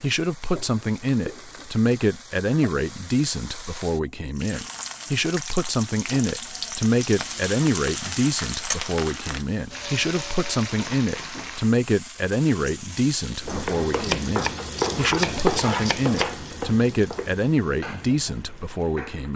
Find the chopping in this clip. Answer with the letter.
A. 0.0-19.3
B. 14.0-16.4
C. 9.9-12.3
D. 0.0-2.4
B.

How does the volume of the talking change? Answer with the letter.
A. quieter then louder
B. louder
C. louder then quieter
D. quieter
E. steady
E.